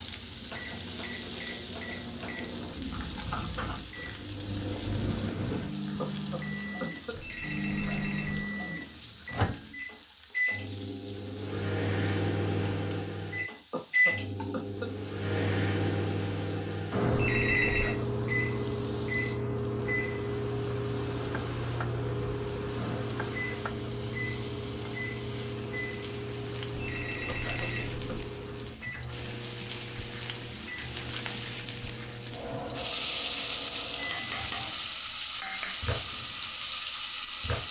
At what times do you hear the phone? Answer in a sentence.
You can hear the phone from 7.1 to 8.4 s, from 17.1 to 17.9 s and from 26.7 to 28.1 s.